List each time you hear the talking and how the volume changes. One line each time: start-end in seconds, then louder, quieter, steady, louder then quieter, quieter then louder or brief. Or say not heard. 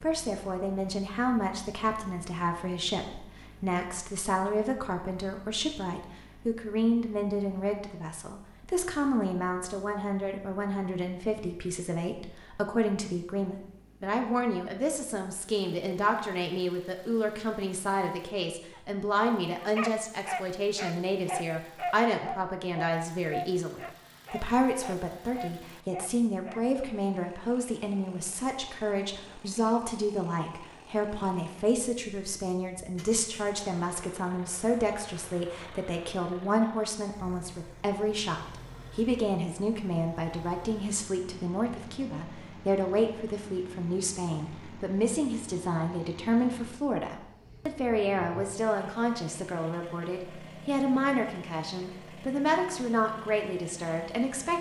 0.0-54.5 steady.